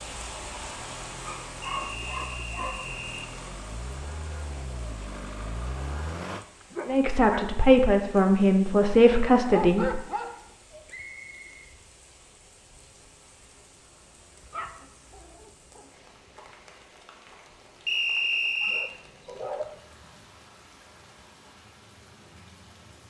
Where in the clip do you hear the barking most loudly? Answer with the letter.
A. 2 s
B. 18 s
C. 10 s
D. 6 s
C.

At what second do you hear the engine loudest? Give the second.
6 s.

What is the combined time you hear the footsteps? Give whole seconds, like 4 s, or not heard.
not heard.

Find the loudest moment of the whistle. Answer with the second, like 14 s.
18 s.